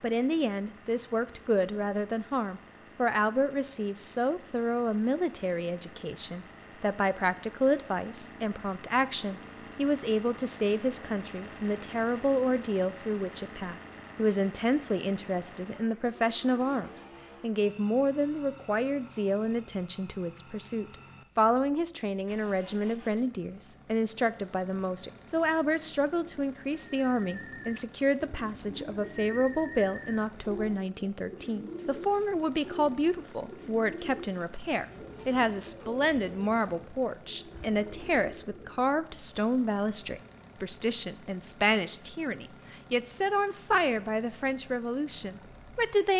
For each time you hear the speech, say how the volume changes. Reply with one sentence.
You can hear the speech from 0.0 to 46.1 s, at a steady volume.